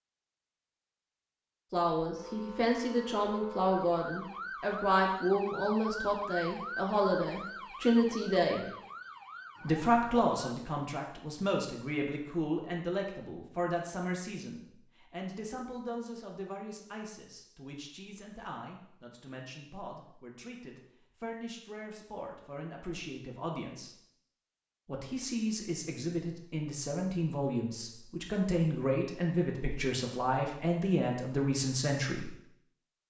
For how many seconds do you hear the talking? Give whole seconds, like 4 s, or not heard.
29 s.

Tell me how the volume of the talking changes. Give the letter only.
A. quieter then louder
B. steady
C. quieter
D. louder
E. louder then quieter
A.